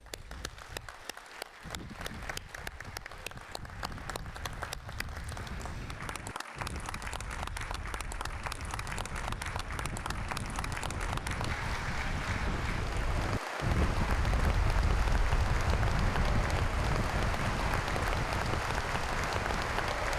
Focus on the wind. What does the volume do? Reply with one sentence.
The volume of the wind goes up.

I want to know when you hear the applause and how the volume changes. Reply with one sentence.
You can hear the applause from 0.0 to 20.1 s, getting louder.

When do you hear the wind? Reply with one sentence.
You can hear the wind from 0.0 to 20.1 s.